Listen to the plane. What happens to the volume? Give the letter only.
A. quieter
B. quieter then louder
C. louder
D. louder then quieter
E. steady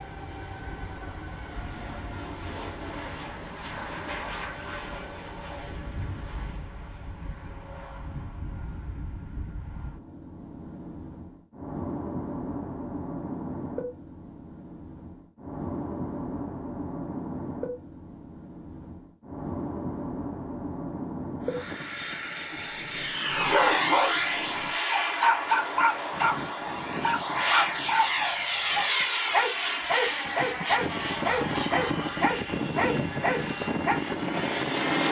C.